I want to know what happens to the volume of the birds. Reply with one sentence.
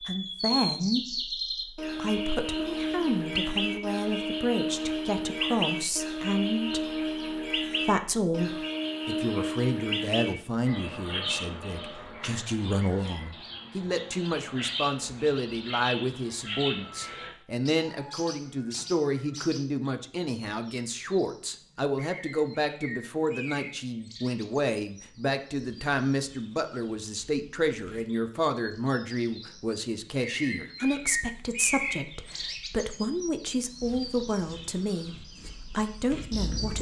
The loudness of the birds goes down, then up.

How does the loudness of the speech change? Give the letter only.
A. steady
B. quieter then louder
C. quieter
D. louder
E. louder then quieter
A.